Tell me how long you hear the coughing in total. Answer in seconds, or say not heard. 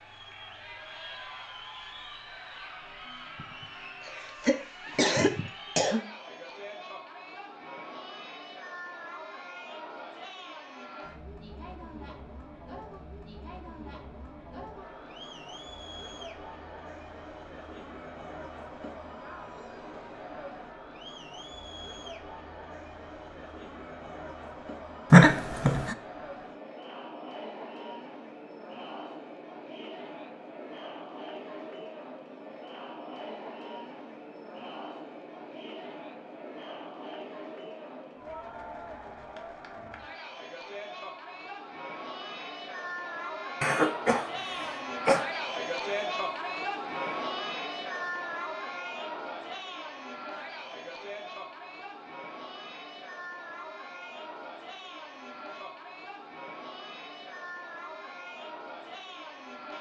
5 s.